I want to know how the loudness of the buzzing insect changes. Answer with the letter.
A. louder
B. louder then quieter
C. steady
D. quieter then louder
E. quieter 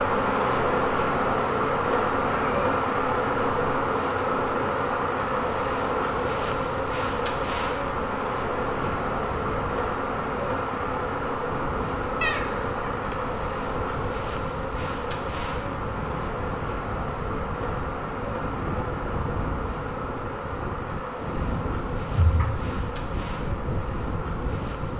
E.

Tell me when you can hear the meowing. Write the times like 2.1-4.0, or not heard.
2.2-4.5, 12.2-13.3, 22.1-22.9.